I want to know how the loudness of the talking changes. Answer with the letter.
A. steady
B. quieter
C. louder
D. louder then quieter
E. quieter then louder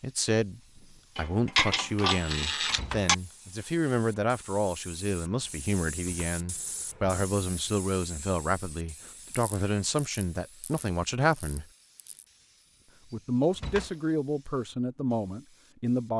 A.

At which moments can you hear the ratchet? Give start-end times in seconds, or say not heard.
1.1-3.1, 9.3-12.2.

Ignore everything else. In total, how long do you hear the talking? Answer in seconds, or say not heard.
15 s.